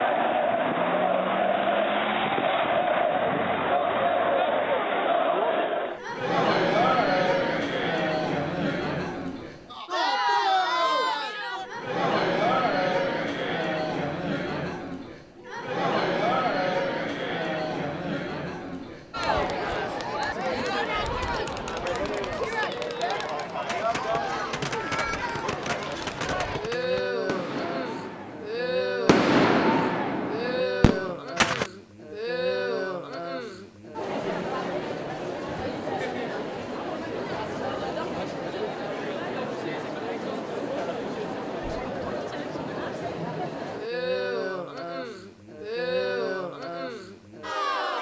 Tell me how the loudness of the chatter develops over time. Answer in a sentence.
The volume of the chatter goes down.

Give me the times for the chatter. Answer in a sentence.
You can hear the chatter from 0.0 to 47.9 s.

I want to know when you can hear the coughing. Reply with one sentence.
The coughing can't be heard in this clip.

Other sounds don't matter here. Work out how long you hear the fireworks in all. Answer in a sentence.
The fireworks can be heard for 8 seconds in total.